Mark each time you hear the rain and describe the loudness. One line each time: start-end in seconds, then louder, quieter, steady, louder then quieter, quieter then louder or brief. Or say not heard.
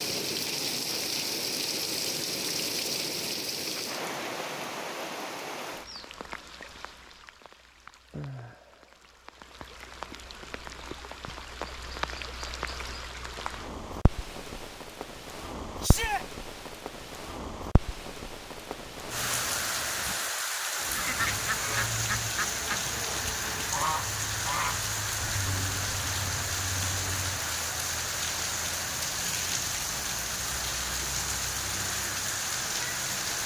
0.0-33.4 quieter then louder.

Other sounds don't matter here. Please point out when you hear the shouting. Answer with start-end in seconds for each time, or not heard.
15.8-16.2.